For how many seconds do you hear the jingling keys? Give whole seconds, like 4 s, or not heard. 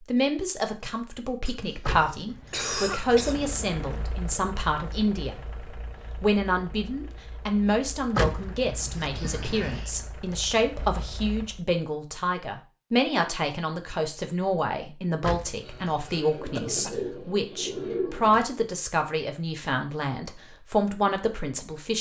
5 s.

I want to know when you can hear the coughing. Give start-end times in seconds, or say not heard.
1.4-3.4, 9.1-9.9, 15.6-17.0.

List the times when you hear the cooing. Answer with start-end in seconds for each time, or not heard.
16.2-18.4.